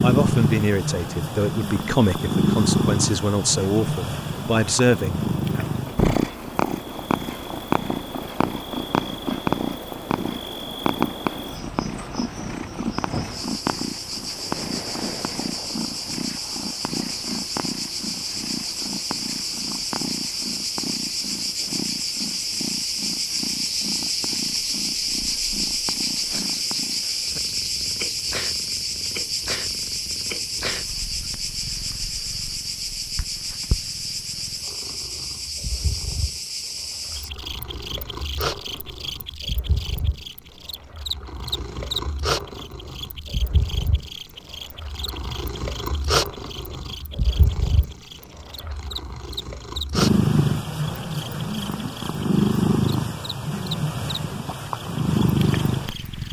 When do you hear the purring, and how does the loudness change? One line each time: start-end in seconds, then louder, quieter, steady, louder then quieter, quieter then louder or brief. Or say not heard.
0.0-56.2 quieter then louder.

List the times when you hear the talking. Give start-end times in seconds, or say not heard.
0.0-5.8.